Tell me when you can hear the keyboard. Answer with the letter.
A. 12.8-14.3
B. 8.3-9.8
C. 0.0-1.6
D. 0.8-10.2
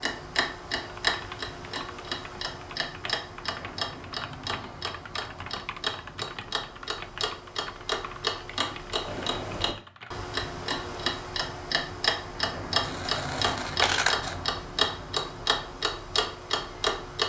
D.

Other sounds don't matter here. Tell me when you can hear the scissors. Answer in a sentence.
You can hear the scissors from 12.8 to 14.3 s.